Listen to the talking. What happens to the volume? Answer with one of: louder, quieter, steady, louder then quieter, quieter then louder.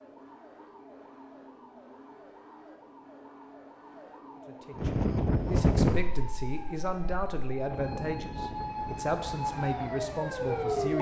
steady.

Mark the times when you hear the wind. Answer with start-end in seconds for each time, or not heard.
4.8-10.9.